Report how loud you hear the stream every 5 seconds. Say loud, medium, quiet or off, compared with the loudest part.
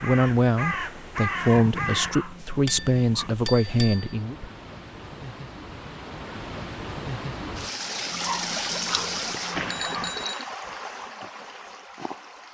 quiet, loud, medium.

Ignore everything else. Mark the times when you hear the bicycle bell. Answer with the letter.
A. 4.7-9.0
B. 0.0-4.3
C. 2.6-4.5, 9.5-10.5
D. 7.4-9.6
C.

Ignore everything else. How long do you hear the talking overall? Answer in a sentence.
You can hear the talking for 4 seconds altogether.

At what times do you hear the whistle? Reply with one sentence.
The whistle can't be heard in this clip.